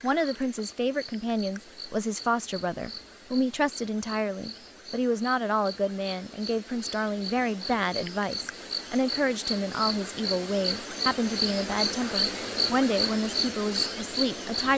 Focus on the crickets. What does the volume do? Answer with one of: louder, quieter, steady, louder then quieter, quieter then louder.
louder.